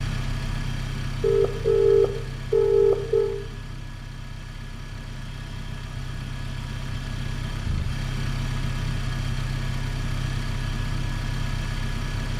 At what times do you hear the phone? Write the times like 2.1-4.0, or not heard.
1.2-3.4.